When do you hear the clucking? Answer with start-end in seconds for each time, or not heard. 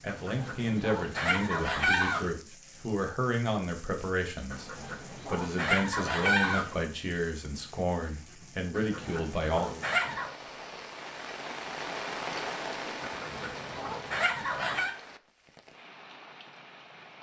0.1-2.3, 4.5-6.8, 8.7-10.3, 13.0-14.9.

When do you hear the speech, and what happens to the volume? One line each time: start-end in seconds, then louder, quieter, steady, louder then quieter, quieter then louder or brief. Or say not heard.
0.0-9.8 steady.